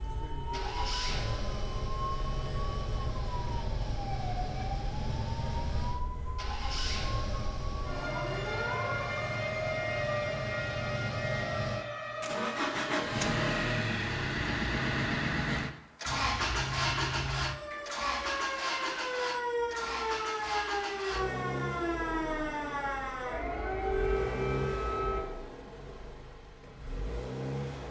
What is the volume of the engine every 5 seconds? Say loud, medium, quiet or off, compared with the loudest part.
medium, medium, loud, loud, medium, medium.